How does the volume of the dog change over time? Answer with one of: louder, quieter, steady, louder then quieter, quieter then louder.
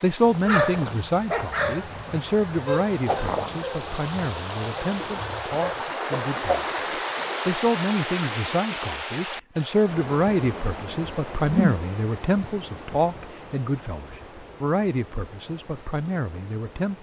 quieter.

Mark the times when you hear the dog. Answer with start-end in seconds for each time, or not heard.
0.2-5.8.